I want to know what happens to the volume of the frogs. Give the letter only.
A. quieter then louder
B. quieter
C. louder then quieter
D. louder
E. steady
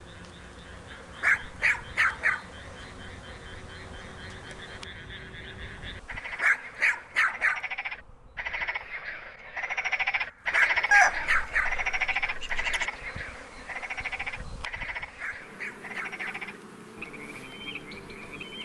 C.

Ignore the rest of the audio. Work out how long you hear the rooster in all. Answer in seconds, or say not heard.
2 s.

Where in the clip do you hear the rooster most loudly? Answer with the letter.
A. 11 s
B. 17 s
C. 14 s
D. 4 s
A.